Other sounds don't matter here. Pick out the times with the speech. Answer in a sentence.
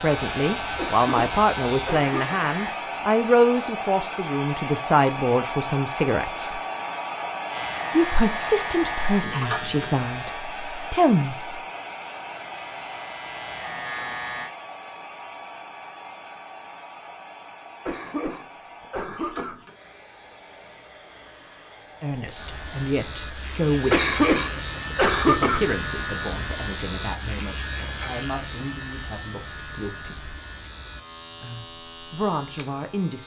You can hear the speech from 0.0 to 6.6 s, from 7.9 to 11.6 s, from 22.0 to 24.1 s, from 25.2 to 30.4 s and from 31.4 to 33.2 s.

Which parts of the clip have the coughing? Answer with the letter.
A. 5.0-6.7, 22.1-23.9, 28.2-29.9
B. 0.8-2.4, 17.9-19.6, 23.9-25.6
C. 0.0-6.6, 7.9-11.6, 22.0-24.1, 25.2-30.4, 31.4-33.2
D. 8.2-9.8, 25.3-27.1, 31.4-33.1
B.